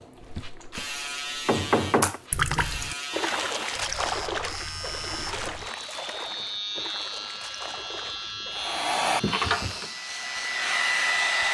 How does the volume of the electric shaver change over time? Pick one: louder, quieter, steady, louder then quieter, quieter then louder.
steady.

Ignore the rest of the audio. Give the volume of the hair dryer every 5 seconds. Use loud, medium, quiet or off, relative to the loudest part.
off, loud, loud.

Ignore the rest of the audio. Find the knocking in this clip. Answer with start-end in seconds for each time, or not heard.
1.4-2.2, 9.2-9.8.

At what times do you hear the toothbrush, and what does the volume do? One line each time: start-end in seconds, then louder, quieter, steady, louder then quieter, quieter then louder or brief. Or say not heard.
not heard.